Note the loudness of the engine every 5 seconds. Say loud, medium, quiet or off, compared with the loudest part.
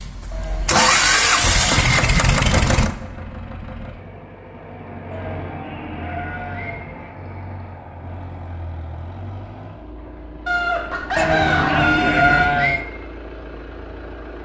loud, quiet, quiet.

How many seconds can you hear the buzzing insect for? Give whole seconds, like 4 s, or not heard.
not heard.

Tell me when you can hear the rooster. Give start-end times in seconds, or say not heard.
10.4-12.4.